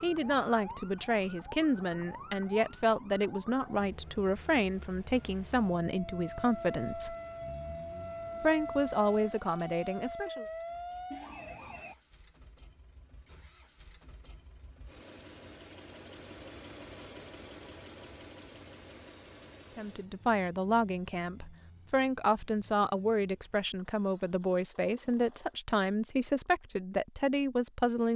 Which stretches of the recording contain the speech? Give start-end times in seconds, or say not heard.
0.0-7.2, 8.4-10.4, 19.8-28.1.